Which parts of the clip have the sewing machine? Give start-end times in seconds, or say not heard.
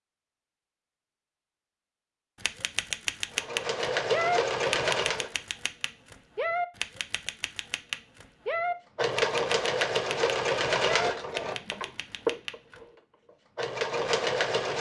3.4-5.3, 8.9-14.7.